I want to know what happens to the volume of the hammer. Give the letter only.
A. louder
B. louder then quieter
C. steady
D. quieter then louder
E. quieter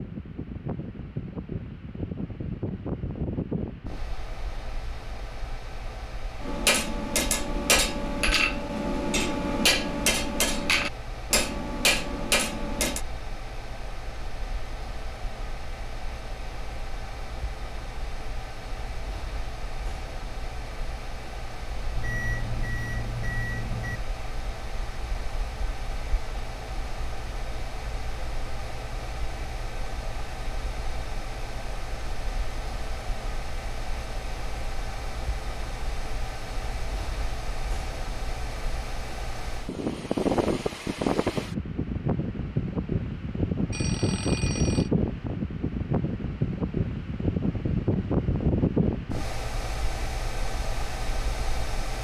C.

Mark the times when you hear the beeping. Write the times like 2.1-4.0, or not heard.
21.9-24.0, 43.7-44.9.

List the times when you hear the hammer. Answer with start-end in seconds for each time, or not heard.
6.4-13.0.